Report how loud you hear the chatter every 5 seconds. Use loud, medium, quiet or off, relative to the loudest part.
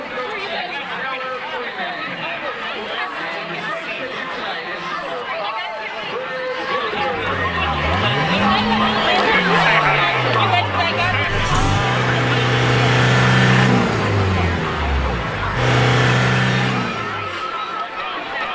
medium, loud, loud, medium.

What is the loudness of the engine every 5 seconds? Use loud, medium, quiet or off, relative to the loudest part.
off, medium, loud, loud.